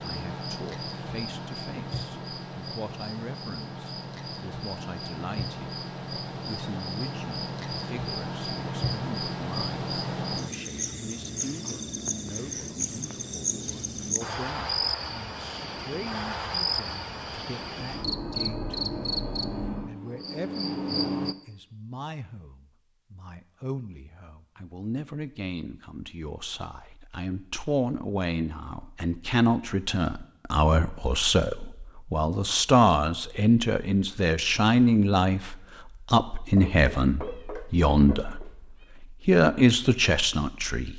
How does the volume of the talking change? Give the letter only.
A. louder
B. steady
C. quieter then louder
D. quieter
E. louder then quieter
A.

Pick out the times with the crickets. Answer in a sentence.
The crickets can be heard from 0.0 to 21.4 s.